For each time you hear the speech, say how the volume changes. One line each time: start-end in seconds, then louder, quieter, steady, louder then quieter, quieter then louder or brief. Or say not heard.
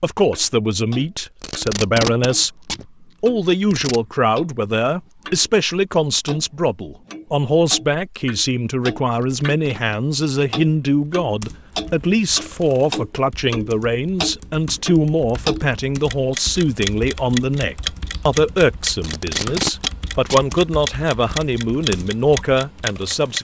0.0-2.5 brief
3.2-23.3 steady.